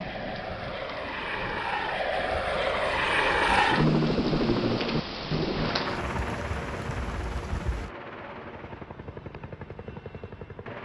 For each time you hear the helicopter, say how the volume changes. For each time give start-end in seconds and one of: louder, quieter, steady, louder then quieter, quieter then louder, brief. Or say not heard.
0.0-10.8 louder then quieter.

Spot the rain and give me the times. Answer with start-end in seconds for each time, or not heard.
0.0-7.9.